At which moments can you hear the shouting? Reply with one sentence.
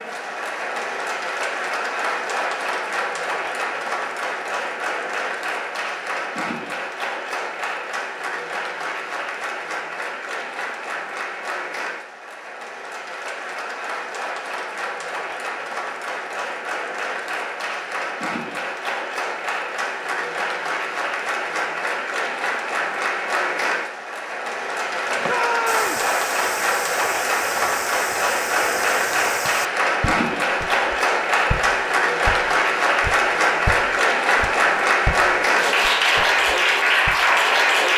The shouting can be heard from 25.2 to 26.1 s.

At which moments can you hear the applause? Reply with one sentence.
You can hear the applause from 0.0 to 37.9 s.